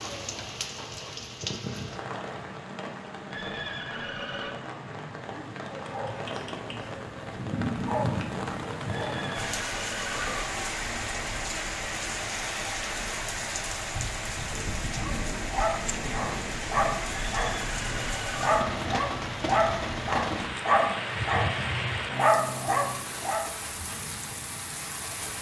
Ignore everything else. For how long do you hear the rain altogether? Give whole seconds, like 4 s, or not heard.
25 s.